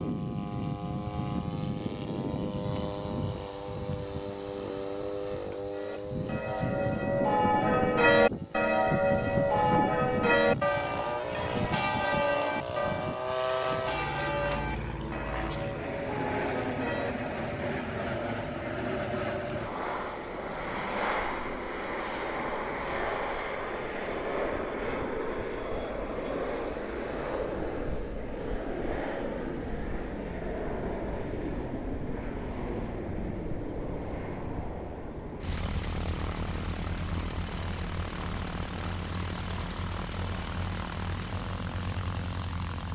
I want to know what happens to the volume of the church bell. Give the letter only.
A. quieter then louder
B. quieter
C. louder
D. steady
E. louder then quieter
B.